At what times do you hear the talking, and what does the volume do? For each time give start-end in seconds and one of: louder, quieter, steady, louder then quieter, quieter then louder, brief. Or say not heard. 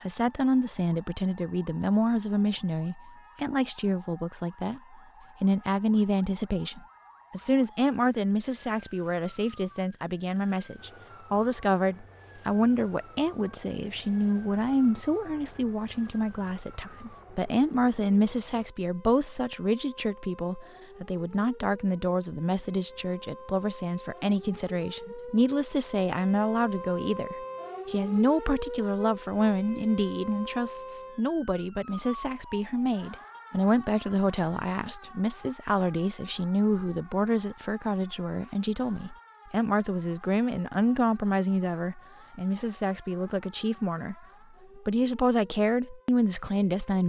0.0-44.1 steady
44.8-47.0 brief.